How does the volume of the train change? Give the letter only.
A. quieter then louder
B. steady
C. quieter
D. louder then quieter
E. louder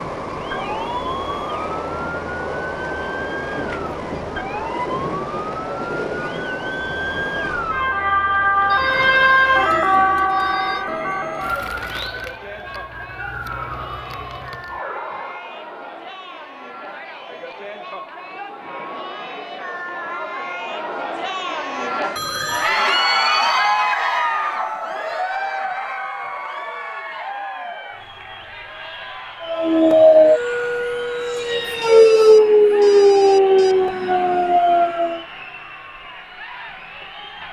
B.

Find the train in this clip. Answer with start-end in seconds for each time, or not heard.
0.0-8.1.